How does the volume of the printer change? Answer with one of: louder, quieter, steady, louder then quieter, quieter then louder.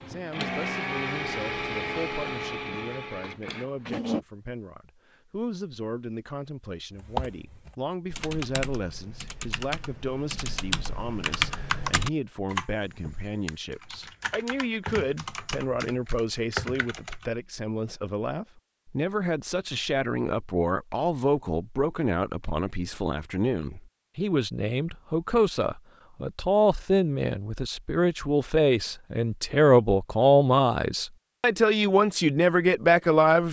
quieter.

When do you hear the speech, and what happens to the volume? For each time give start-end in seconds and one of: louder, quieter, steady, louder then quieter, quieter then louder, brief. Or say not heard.
0.1-33.4 louder.